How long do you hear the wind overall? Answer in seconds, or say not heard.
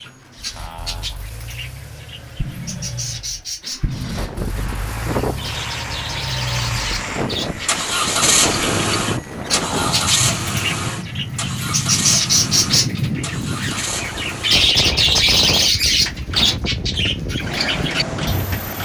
15 s.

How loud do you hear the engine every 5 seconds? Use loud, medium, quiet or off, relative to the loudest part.
quiet, loud, loud, medium.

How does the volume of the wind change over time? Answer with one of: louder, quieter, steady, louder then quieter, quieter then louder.
steady.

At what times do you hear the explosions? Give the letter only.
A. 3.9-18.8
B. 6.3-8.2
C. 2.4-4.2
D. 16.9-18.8
C.